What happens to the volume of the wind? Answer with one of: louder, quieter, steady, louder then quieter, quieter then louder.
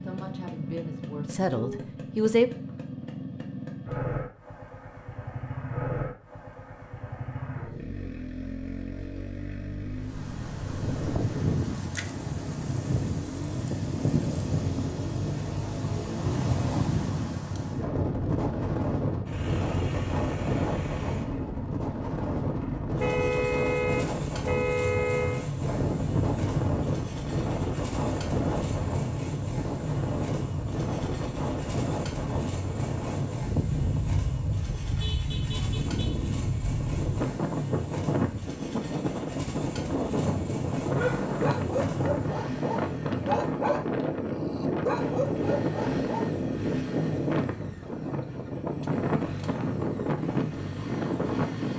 steady.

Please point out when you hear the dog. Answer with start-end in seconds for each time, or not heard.
40.9-46.3.